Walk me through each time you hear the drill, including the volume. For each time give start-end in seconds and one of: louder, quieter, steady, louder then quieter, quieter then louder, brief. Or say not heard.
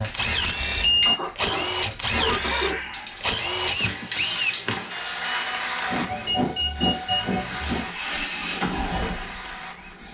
0.0-10.0 quieter.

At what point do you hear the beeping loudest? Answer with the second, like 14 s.
1 s.